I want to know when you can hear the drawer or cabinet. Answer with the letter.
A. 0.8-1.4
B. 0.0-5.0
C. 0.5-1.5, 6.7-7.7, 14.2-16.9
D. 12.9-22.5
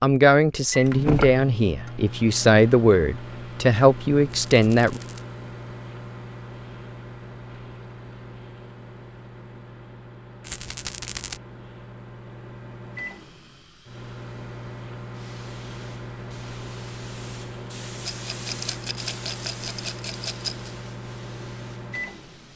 A.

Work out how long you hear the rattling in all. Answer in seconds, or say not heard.
5 s.